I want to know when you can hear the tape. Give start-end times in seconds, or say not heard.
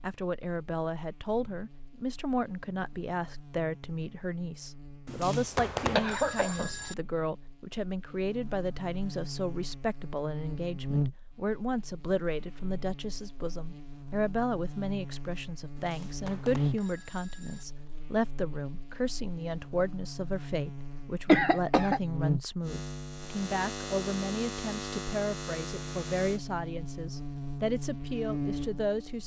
not heard.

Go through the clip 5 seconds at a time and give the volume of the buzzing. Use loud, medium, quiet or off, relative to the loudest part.
quiet, medium, loud, loud, loud, loud.